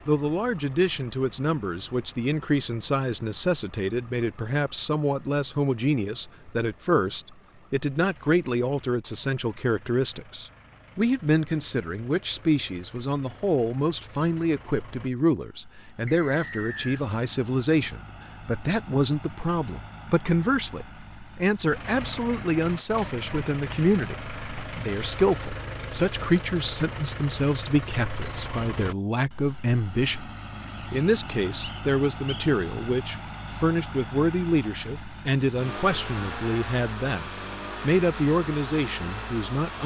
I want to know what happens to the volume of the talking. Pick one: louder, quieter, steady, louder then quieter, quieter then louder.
steady.